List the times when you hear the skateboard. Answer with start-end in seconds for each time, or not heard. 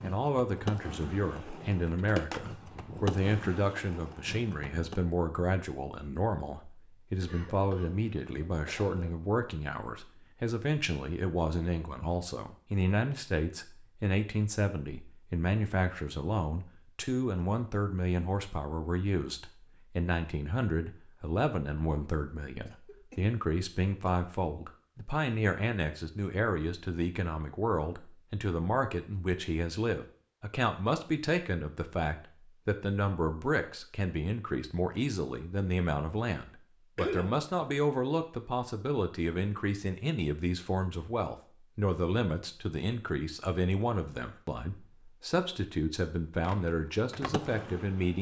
0.0-5.0, 46.4-48.1.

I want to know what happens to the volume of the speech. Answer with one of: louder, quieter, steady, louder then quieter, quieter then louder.
steady.